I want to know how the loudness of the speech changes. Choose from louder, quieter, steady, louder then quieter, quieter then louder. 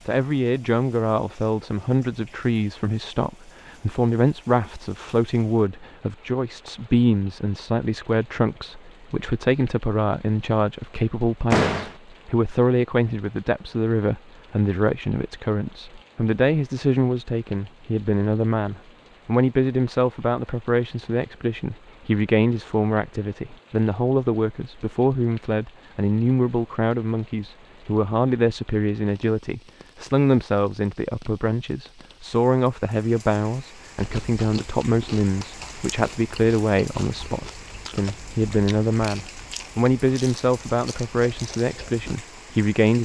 steady.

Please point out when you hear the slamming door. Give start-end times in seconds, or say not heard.
11.5-11.9.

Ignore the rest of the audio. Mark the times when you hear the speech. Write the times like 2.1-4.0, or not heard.
0.1-43.0.